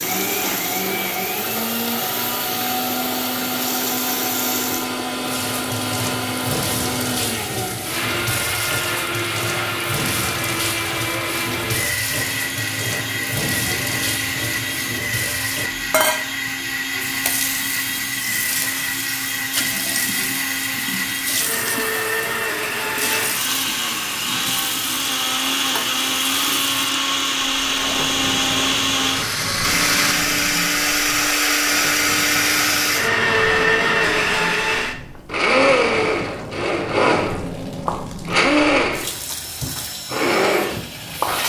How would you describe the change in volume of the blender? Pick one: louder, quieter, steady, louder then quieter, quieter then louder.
louder.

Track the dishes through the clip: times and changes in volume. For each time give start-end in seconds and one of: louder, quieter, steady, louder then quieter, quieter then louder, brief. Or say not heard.
not heard.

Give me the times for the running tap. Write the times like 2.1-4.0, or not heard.
0.0-41.4.